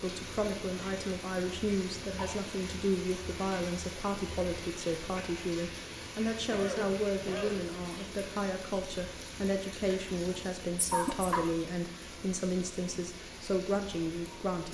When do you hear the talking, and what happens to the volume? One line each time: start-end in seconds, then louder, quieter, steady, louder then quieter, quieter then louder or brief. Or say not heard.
0.0-14.6 steady.